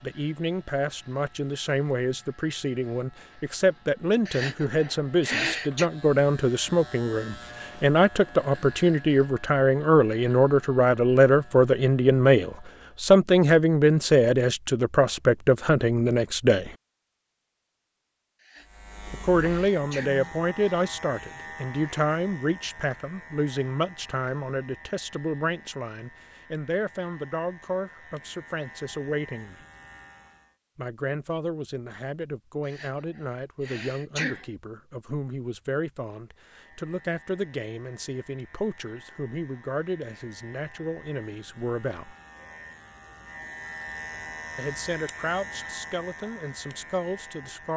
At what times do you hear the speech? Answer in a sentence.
You can hear the speech from 0.0 to 16.8 s, from 19.1 to 29.6 s, from 30.8 to 42.1 s and from 44.5 to 47.7 s.